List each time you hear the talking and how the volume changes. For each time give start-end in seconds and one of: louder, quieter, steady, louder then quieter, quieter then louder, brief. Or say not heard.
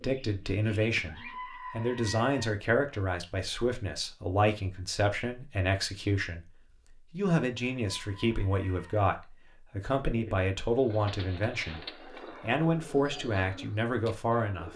0.0-6.5 steady
7.1-14.7 steady.